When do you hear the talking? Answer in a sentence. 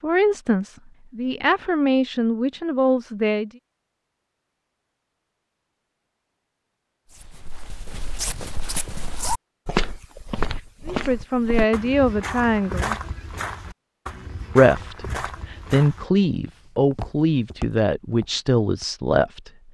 The talking can be heard from 0.0 to 3.5 s, from 10.8 to 12.9 s and from 14.6 to 19.5 s.